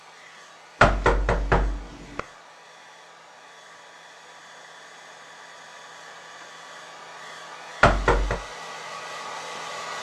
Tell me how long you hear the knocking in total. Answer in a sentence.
The knocking can be heard for 2 seconds in total.